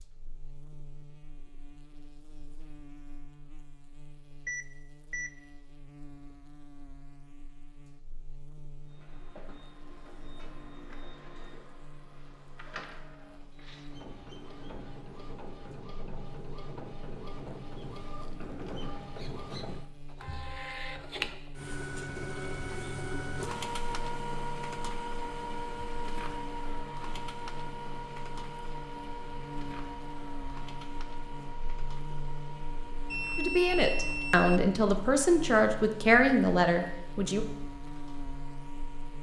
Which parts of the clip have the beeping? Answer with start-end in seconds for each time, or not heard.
4.5-5.4, 33.0-34.6.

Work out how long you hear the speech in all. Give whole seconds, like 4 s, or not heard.
4 s.